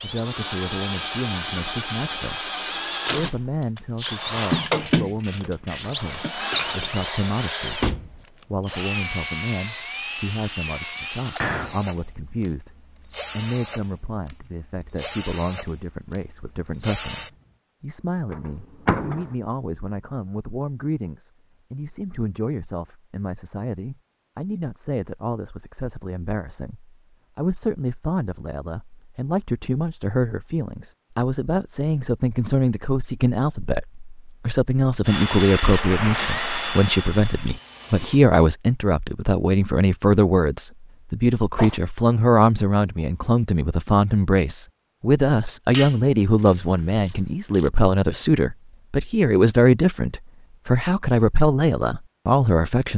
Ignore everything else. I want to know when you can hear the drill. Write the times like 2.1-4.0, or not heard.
0.0-17.3, 35.0-38.2.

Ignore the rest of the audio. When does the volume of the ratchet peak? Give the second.
5 s.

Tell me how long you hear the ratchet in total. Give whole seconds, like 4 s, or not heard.
4 s.